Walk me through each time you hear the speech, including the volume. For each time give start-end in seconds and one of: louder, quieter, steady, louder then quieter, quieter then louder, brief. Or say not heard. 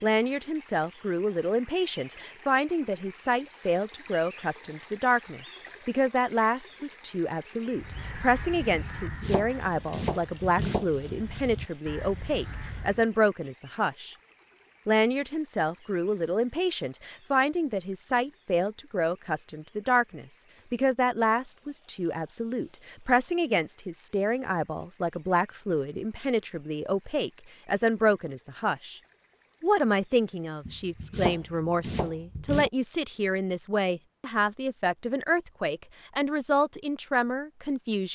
0.0-14.2 steady
14.8-29.0 steady
29.6-38.1 steady.